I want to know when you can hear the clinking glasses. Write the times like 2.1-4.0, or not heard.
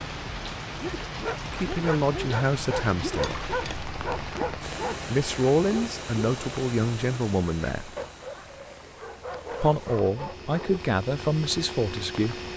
3.2-3.9.